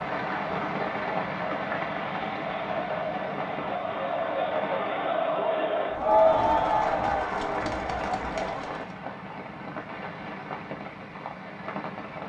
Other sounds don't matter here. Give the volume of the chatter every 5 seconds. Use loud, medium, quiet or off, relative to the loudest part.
medium, loud, off.